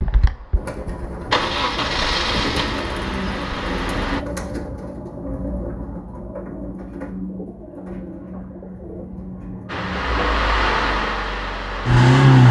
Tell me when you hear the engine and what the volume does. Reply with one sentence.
The engine can be heard from 0.0 to 4.2 s, getting louder then quieter; and briefly from 9.7 to 12.4 s.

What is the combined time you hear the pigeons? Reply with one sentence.
The pigeons can be heard for 10 seconds in total.